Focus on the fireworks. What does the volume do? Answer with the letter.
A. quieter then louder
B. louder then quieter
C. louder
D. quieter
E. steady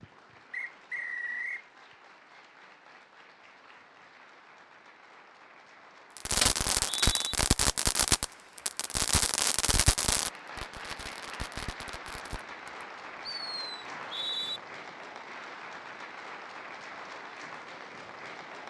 D.